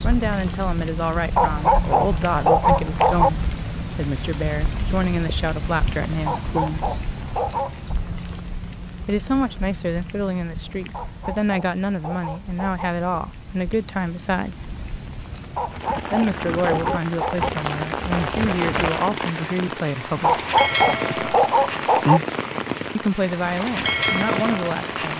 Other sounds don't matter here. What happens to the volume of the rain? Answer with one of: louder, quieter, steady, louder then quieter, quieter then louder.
quieter then louder.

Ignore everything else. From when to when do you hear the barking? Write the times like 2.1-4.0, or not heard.
1.4-3.3, 6.2-8.0, 10.9-12.9, 15.6-17.5, 20.2-22.2.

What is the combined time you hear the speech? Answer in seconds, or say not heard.
19 s.